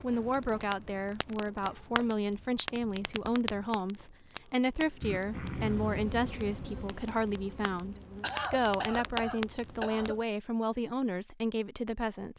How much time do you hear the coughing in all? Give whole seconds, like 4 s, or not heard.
4 s.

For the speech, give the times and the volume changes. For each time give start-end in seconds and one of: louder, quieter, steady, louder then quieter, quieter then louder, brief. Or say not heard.
0.0-12.3 steady.